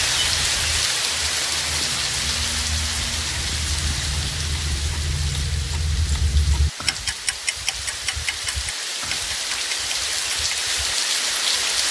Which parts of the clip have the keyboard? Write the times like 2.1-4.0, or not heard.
not heard.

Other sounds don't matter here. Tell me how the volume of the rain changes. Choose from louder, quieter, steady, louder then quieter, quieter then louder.
quieter then louder.